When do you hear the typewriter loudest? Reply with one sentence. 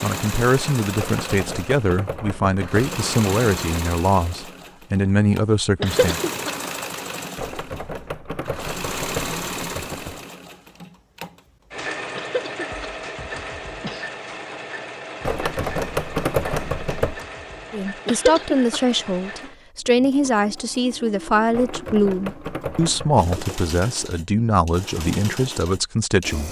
The loudest moment of the typewriter is at 16 seconds.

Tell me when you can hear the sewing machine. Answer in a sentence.
You can hear the sewing machine from 0.0 to 26.4 s.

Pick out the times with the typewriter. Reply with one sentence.
You can hear the typewriter from 0.9 to 2.9 s, from 7.3 to 10.2 s, from 15.2 to 17.2 s and from 21.5 to 23.6 s.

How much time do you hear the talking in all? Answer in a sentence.
You can hear the talking for 15 seconds altogether.